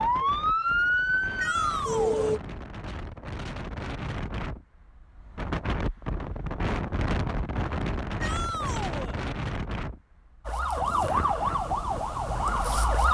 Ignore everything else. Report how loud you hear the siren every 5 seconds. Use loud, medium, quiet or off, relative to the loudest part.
loud, off, loud.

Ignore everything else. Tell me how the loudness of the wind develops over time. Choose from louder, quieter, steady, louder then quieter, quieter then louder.
louder then quieter.